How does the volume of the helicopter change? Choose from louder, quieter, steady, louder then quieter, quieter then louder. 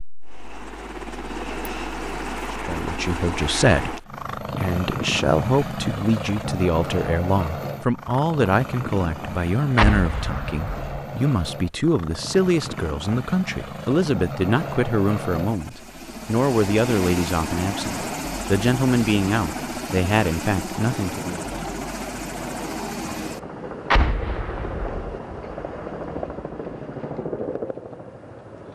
steady.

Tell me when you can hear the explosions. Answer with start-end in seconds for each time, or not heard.
9.8-10.9, 23.9-25.1.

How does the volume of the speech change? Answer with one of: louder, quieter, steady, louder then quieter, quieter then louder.
steady.